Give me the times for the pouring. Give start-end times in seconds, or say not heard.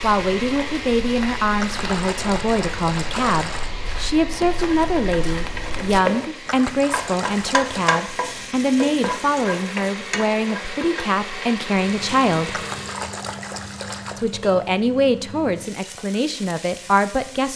1.6-3.7, 6.5-8.0, 12.5-14.2.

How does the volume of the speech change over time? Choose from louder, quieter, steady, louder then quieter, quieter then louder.
steady.